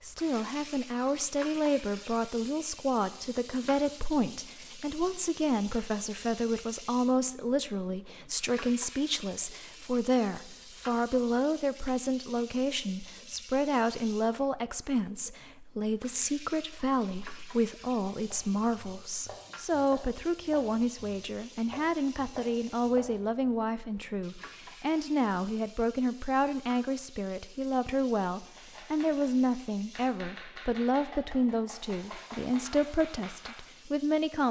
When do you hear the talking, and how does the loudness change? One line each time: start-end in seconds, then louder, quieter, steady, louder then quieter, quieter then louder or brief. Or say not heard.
0.0-34.4 steady.